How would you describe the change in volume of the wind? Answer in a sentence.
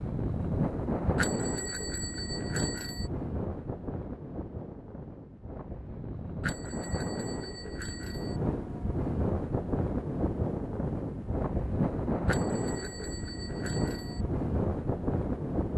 The loudness of the wind goes down, then up.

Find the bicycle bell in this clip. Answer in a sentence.
You can hear the bicycle bell from 1.1 to 3.1 s, from 6.4 to 8.4 s and from 12.2 to 14.2 s.